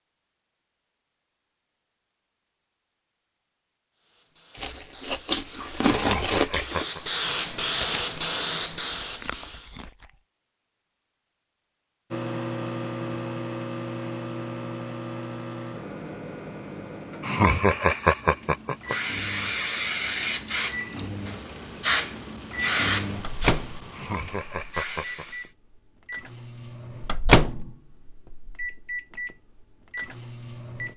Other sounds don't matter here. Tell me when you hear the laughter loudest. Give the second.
18 s.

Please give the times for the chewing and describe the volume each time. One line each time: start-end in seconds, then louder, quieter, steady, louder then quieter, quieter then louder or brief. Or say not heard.
4.5-10.2 quieter.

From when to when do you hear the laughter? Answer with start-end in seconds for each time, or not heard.
5.9-7.0, 17.2-18.9, 23.9-25.2.